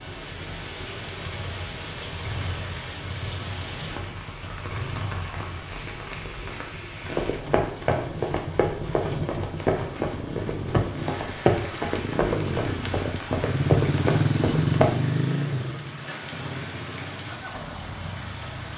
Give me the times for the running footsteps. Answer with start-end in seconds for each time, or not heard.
7.0-14.9.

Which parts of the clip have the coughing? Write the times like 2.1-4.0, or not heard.
not heard.